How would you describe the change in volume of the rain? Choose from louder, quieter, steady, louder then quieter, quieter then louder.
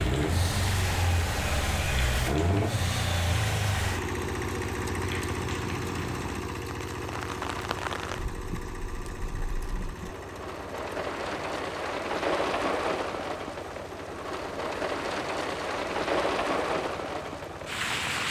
louder.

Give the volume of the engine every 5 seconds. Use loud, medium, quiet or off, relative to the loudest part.
loud, medium, quiet, quiet.